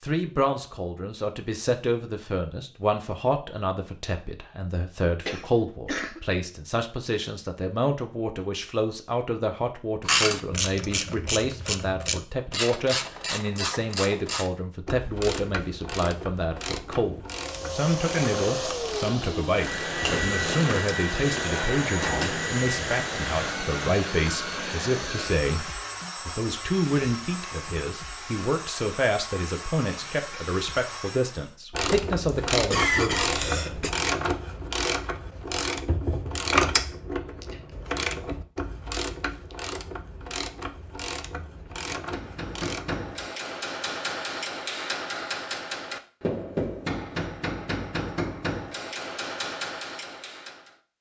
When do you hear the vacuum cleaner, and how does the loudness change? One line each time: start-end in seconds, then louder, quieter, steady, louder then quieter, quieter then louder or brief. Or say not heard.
17.3-31.6 quieter.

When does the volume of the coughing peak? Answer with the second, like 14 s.
33 s.